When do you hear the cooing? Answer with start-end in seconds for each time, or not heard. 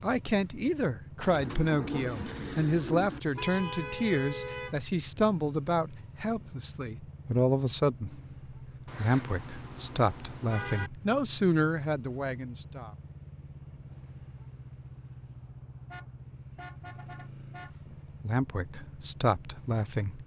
1.2-3.2.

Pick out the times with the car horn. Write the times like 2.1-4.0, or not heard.
3.3-4.8, 8.8-10.9, 15.9-17.7.